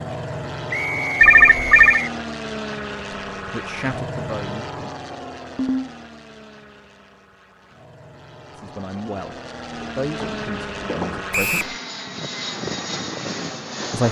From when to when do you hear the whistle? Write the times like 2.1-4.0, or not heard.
0.7-2.1, 11.3-11.8.